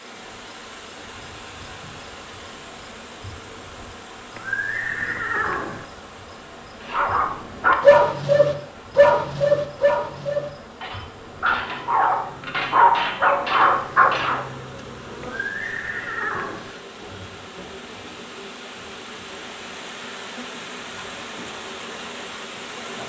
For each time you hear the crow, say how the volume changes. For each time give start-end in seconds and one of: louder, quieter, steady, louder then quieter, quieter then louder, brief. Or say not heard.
not heard.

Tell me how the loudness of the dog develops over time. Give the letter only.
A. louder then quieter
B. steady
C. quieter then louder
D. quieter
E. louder
C.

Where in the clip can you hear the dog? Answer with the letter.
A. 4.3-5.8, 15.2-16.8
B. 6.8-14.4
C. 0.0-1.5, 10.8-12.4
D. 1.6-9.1
B.